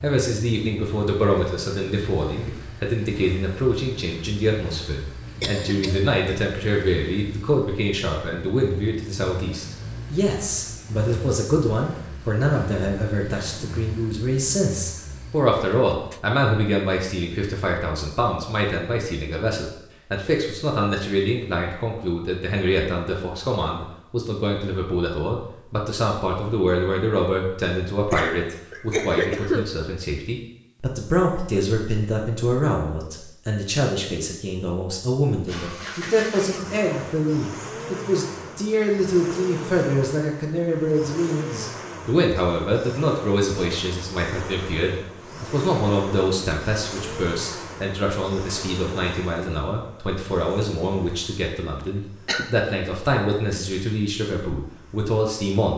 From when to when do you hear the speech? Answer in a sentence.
You can hear the speech from 0.0 to 55.7 s.